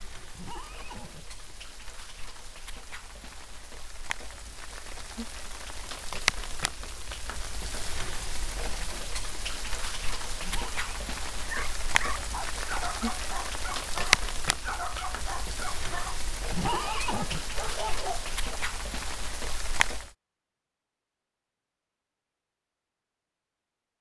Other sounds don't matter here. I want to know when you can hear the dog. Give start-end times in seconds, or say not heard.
11.4-18.6.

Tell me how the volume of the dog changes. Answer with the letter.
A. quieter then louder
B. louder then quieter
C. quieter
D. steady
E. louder
D.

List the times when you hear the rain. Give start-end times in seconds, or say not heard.
0.0-20.1.